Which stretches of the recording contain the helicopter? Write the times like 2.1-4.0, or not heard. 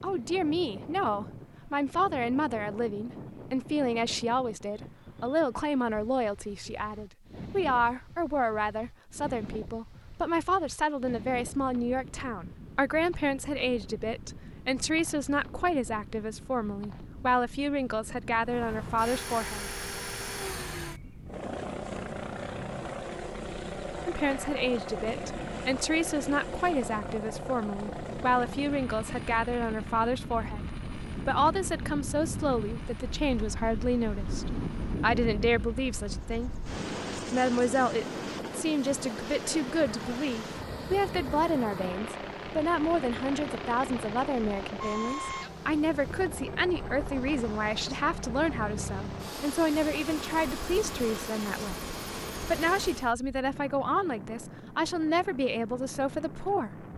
18.4-53.1.